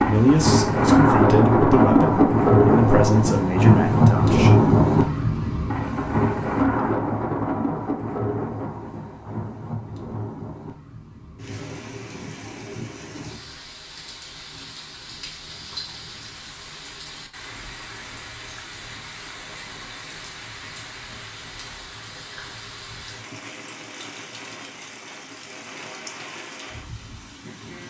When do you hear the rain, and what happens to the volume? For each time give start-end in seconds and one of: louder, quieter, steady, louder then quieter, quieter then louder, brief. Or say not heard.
0.0-27.8 quieter.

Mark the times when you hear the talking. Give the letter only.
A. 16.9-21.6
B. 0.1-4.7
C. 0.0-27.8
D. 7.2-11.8
B.